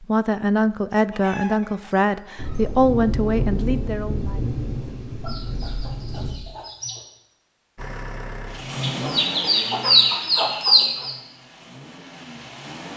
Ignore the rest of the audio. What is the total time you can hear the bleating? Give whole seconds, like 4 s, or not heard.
not heard.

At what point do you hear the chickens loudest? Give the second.
10 s.